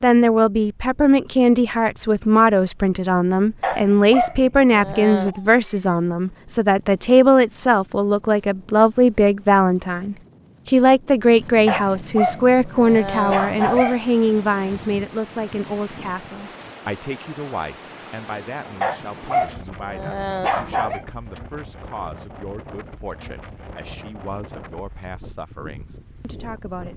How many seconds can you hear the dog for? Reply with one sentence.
The dog can be heard for 6 seconds in total.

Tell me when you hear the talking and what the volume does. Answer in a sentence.
The talking can be heard from 0.0 to 26.9 s, getting quieter.